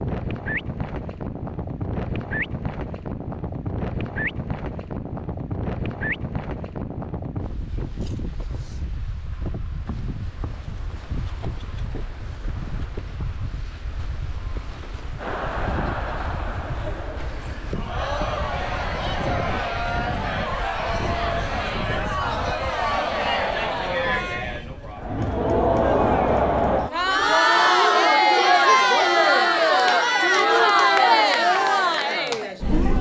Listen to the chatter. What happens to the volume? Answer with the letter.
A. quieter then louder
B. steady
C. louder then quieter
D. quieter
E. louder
E.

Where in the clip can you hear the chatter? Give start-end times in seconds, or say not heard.
15.2-32.9.